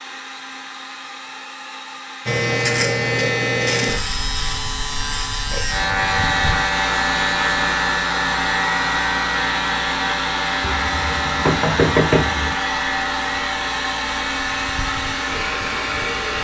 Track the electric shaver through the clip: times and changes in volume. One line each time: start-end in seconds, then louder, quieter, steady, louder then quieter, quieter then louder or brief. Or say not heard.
2.2-16.4 quieter.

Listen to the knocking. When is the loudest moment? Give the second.
12 s.